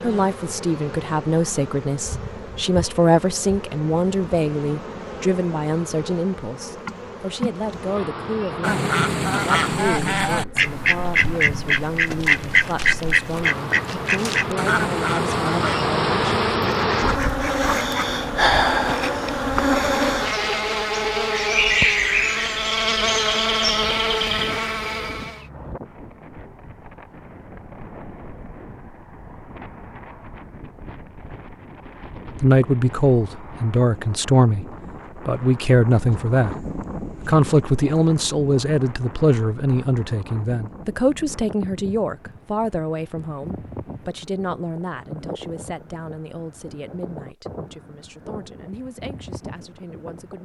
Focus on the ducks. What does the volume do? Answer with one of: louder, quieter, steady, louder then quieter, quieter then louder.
quieter.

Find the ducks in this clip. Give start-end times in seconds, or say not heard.
8.6-18.2.